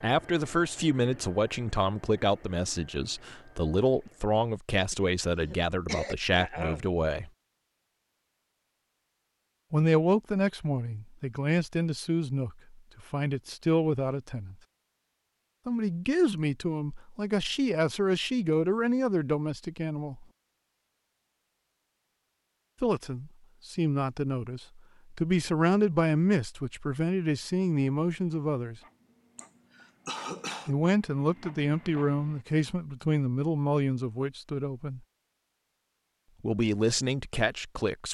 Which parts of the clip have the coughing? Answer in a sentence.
The coughing can be heard from 4.9 to 6.9 s and from 29.4 to 30.8 s.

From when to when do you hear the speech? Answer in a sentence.
You can hear the speech from 0.0 to 7.3 s, from 9.7 to 14.6 s, from 15.7 to 20.2 s, from 22.8 to 28.8 s, from 30.6 to 35.0 s and from 36.4 to 38.0 s.